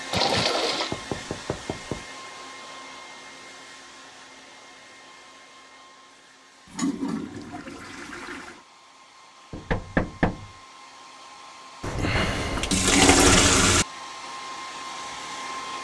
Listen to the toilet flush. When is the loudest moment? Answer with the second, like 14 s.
13 s.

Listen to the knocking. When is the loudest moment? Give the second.
10 s.